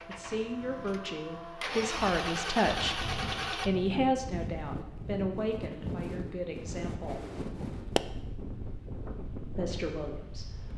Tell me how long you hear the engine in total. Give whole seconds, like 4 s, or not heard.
4 s.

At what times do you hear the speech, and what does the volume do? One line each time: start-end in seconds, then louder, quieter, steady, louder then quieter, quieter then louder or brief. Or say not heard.
0.1-7.2 louder then quieter
9.5-10.5 brief.